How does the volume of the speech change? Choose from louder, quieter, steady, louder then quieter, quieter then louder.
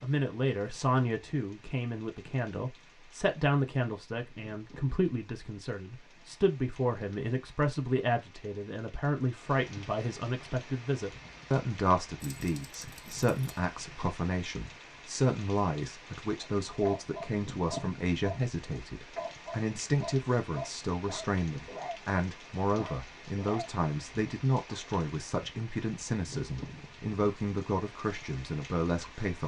steady.